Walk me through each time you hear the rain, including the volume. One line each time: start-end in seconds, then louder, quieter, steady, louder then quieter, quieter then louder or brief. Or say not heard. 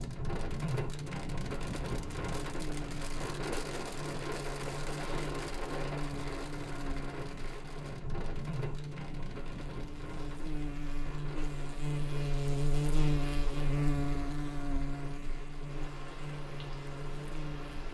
0.0-17.9 quieter.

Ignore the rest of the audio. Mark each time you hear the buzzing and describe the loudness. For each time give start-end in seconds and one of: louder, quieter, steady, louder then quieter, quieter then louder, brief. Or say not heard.
0.0-17.9 louder then quieter.